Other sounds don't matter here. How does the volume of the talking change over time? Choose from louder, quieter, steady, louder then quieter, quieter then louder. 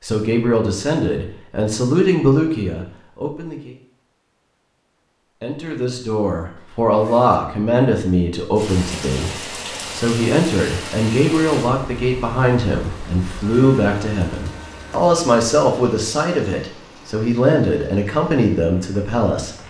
steady.